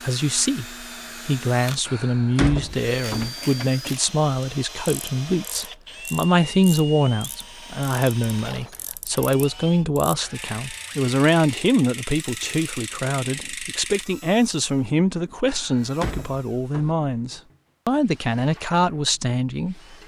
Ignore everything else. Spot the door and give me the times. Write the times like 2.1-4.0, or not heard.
1.9-3.3, 15.4-16.9.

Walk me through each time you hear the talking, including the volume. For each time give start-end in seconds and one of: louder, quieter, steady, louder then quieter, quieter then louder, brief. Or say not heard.
0.0-19.9 steady.